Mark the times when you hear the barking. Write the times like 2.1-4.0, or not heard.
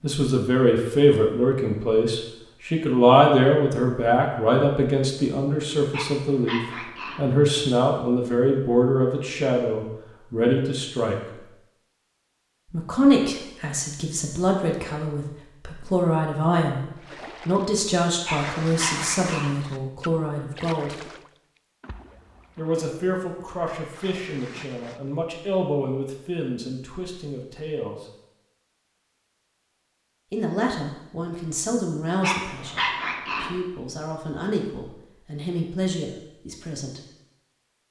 5.9-7.2, 18.2-19.6, 32.2-33.5.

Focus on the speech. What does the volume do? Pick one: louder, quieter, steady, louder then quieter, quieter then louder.
quieter.